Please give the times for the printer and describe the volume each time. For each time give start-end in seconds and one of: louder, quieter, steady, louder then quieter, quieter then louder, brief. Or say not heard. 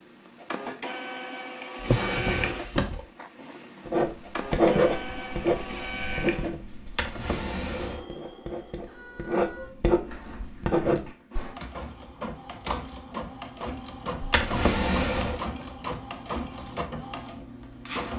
0.0-18.1 quieter then louder.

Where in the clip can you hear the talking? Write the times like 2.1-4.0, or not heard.
not heard.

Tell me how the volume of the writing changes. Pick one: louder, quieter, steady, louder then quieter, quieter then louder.
quieter then louder.